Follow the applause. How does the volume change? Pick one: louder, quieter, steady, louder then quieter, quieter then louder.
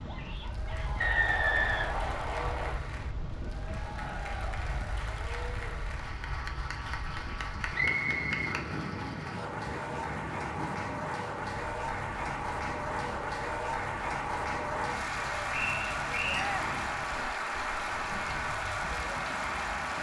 louder.